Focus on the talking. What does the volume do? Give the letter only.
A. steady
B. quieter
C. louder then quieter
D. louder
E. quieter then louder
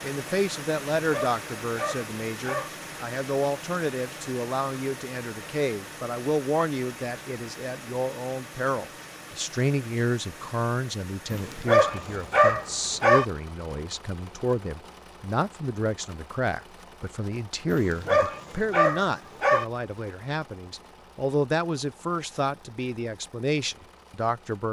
A.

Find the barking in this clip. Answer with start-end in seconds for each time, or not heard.
1.0-2.7, 11.3-13.2, 17.7-19.6.